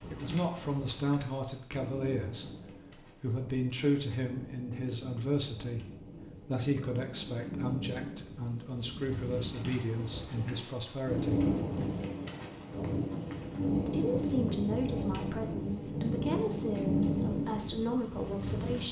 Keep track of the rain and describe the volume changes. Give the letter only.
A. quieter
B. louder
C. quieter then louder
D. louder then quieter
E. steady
B.